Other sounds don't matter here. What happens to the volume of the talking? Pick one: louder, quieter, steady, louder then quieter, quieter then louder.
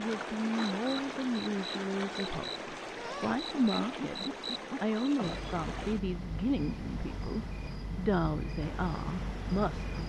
steady.